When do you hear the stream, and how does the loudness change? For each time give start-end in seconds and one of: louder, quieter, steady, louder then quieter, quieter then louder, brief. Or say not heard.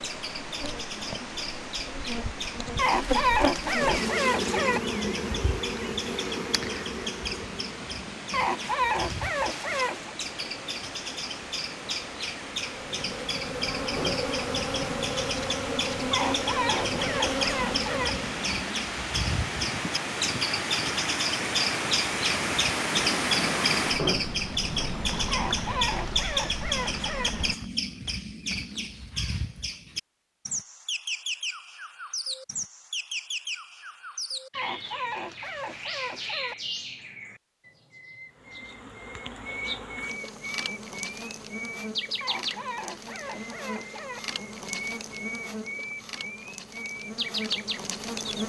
0.0-27.6 louder.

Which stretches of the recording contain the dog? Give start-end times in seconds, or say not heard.
2.8-4.8, 8.3-10.1, 16.1-18.1, 25.3-27.3, 34.5-36.5, 42.2-44.2.